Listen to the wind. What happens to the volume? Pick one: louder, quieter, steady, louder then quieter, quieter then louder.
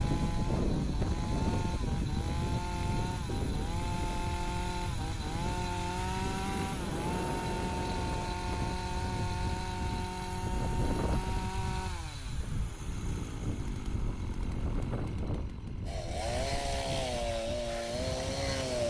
quieter.